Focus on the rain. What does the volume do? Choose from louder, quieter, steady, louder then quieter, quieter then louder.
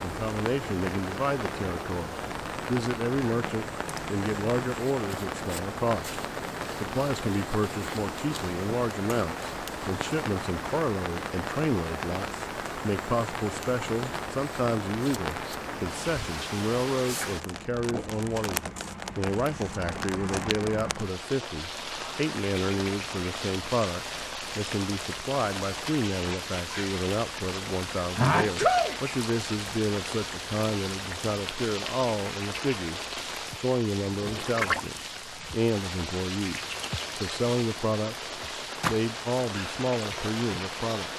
steady.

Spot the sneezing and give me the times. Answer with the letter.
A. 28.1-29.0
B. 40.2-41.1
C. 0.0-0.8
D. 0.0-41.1
A.